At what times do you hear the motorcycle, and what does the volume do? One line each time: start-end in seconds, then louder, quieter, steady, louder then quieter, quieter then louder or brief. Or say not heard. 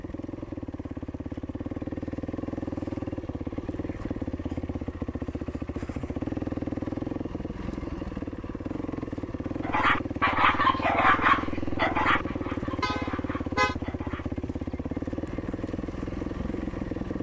0.0-17.1 steady.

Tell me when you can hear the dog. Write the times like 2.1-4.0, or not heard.
9.6-14.7.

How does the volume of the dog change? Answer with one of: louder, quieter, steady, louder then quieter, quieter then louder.
quieter.